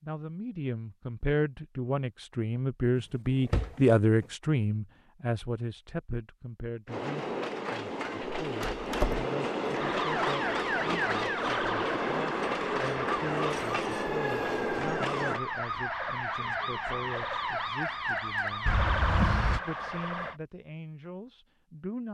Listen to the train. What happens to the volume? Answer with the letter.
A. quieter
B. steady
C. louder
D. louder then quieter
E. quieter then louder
B.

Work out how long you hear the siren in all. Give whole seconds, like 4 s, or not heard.
11 s.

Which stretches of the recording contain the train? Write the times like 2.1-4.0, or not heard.
6.8-15.4.